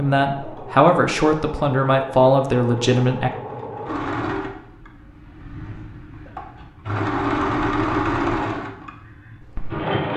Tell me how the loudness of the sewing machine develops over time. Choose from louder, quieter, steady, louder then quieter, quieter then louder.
louder.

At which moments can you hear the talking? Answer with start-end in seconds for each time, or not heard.
0.0-3.3.